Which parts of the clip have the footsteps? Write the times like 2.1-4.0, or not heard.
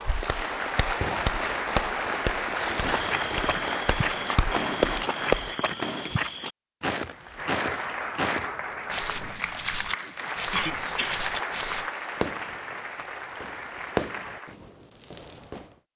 2.9-11.8.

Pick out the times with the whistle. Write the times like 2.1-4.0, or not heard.
not heard.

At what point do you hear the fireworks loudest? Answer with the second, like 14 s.
14 s.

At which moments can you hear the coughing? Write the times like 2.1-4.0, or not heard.
10.5-11.2.